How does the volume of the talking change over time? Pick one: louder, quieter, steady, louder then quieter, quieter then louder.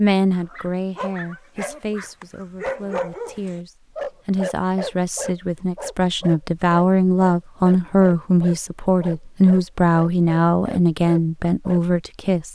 louder.